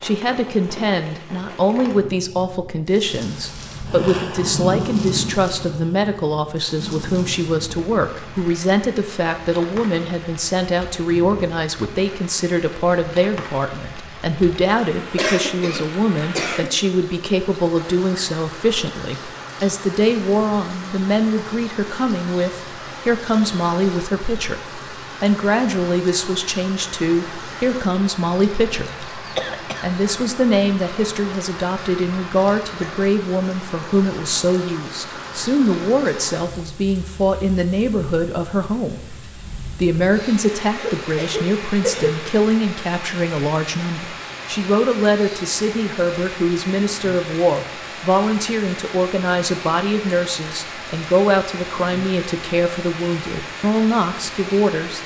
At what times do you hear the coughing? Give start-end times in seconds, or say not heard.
15.2-16.8, 29.4-29.9, 40.8-42.2.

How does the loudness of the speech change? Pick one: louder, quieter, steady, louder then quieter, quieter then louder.
steady.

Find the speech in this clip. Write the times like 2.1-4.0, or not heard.
0.0-29.1, 29.8-55.0.